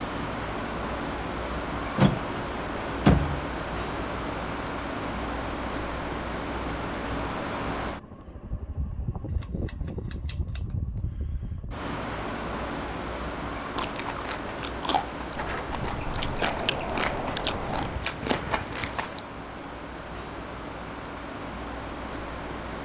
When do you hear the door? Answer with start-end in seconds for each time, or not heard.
1.9-3.5, 15.3-18.0.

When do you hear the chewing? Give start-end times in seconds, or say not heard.
13.8-19.2.